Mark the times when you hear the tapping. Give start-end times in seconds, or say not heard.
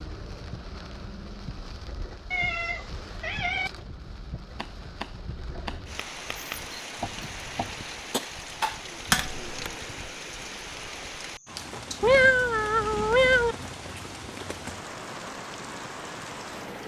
4.5-9.4.